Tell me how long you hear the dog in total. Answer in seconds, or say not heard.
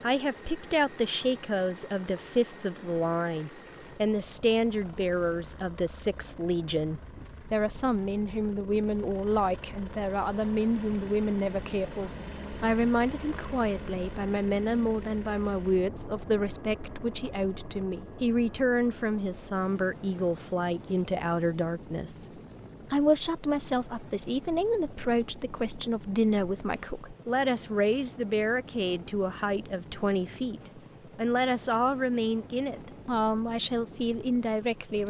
not heard.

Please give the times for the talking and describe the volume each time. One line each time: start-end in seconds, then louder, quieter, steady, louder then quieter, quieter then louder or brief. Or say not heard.
0.0-35.0 steady.